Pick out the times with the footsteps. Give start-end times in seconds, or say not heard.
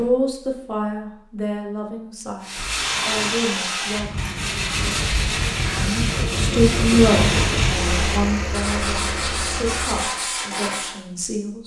not heard.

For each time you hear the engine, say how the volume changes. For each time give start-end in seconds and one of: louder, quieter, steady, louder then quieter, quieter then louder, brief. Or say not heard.
2.8-10.1 louder then quieter.